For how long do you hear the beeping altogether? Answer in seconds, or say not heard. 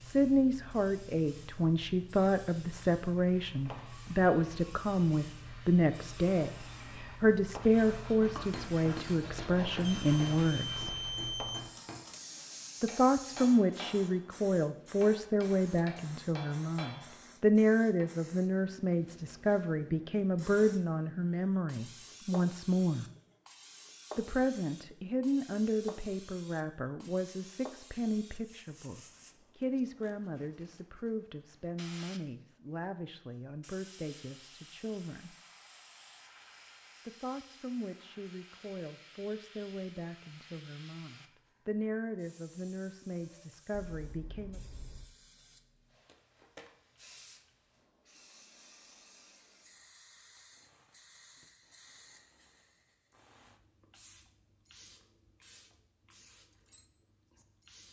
3 s.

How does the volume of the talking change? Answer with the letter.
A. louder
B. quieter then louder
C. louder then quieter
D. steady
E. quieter
E.